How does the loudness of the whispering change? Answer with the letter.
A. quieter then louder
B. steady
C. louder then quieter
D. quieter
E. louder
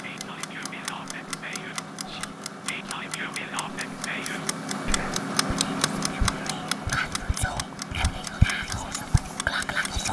E.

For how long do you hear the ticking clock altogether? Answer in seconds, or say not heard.
10 s.